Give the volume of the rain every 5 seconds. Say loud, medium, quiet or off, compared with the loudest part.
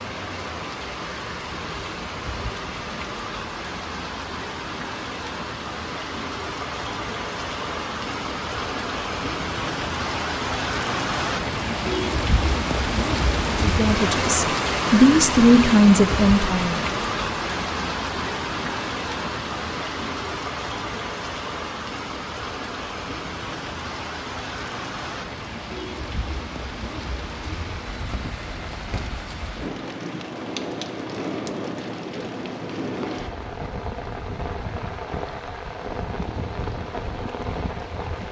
medium, medium, loud, loud, medium, medium, medium, medium.